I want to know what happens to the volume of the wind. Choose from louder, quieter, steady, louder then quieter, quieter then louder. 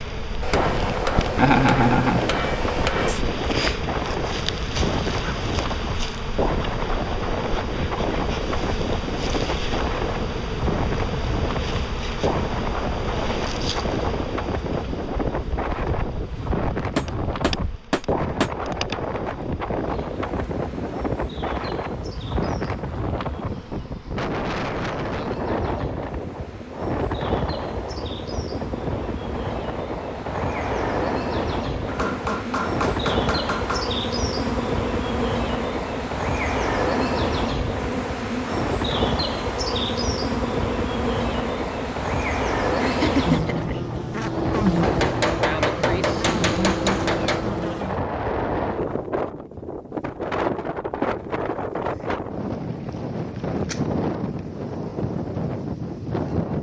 steady.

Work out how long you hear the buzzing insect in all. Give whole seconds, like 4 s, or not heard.
48 s.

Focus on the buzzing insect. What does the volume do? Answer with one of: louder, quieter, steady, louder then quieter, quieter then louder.
quieter then louder.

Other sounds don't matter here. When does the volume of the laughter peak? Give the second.
2 s.